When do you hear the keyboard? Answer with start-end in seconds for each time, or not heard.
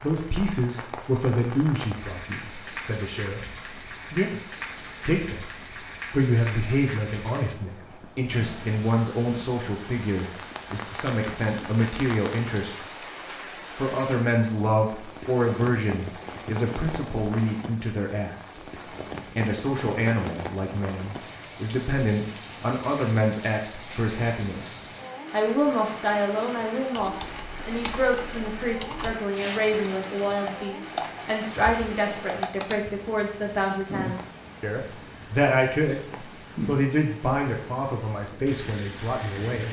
26.9-33.0.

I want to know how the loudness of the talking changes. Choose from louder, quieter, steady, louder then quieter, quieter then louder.
steady.